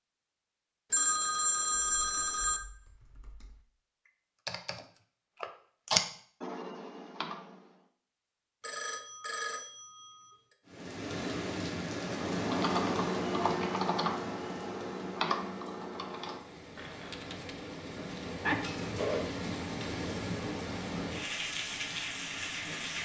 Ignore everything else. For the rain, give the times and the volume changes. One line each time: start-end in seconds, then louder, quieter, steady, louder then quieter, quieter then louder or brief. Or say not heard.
10.7-23.0 quieter then louder.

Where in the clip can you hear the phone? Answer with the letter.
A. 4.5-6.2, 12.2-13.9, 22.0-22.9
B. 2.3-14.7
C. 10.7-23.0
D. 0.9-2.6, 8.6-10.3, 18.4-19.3
D.